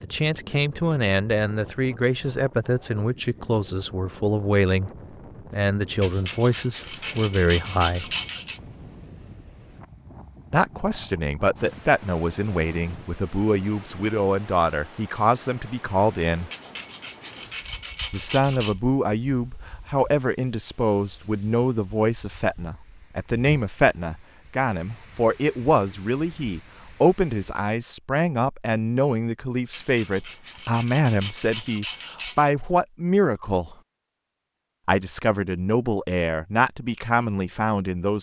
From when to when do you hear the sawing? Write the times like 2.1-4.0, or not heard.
6.0-8.6, 16.5-18.8, 29.7-32.5.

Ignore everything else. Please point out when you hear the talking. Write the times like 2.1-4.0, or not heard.
0.0-4.9, 5.5-8.1, 10.5-16.5, 18.1-33.8, 34.9-38.1.